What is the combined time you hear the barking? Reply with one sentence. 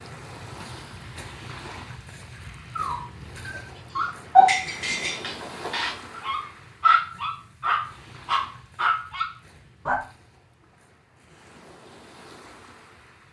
You can hear the barking for 7 seconds altogether.